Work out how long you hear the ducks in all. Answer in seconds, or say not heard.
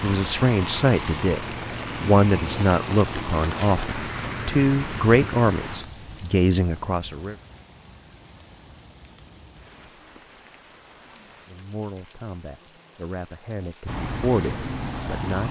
not heard.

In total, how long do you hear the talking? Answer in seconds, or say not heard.
11 s.